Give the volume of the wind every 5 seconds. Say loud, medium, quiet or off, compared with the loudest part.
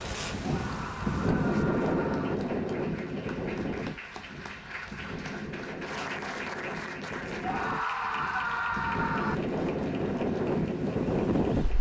loud, medium, loud.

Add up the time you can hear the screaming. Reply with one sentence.
The screaming can be heard for 4 seconds in total.